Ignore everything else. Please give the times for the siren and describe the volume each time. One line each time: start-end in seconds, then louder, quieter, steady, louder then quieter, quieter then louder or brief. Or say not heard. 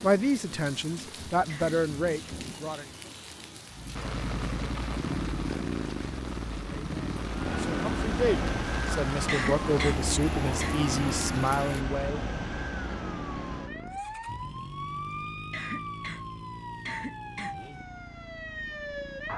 7.2-19.3 quieter.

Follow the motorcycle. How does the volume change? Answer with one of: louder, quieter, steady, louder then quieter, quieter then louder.
quieter.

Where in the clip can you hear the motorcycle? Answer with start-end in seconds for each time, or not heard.
3.7-19.3.